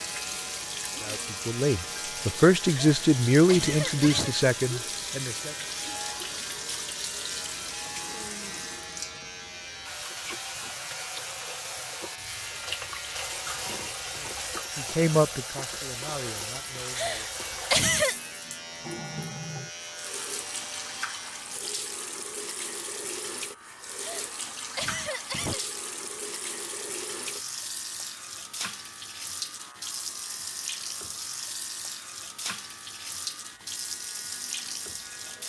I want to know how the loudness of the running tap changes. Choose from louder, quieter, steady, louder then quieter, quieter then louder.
steady.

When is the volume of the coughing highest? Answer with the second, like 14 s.
18 s.